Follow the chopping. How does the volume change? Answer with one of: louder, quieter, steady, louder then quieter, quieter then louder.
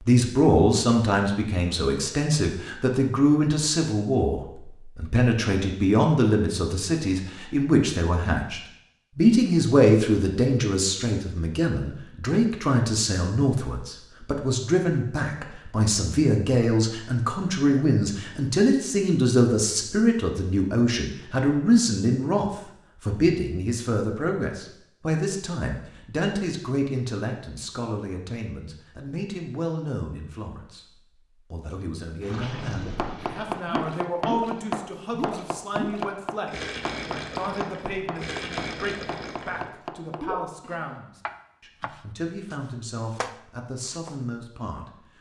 quieter.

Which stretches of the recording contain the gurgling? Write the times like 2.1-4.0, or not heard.
31.6-40.4.